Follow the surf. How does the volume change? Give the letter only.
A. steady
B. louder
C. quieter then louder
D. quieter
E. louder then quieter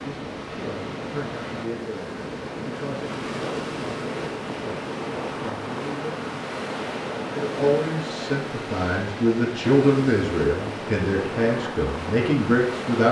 A.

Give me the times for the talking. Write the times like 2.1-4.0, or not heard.
0.0-6.3, 7.3-13.0.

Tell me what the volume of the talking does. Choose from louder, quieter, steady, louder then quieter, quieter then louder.
louder.